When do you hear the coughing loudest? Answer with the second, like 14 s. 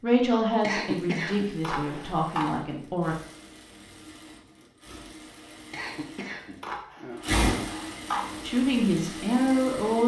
1 s.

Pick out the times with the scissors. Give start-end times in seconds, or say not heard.
1.2-2.5, 6.2-8.4.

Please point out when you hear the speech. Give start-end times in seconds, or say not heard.
0.0-3.1, 8.4-10.0.